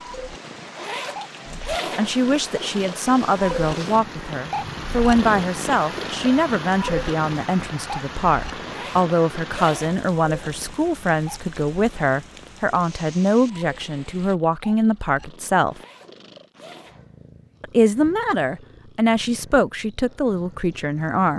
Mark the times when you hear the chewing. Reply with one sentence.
The chewing can't be heard in this clip.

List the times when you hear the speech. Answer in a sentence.
You can hear the speech from 1.4 to 15.8 s and from 17.6 to 21.3 s.